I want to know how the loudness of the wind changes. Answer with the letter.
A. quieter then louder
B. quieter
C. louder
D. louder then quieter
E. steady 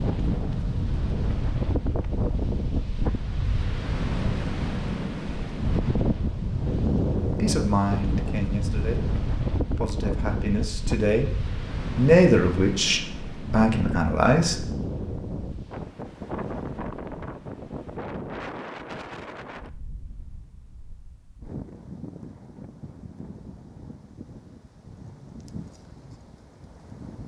B.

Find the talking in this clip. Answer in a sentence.
You can hear the talking from 7.3 to 14.7 s.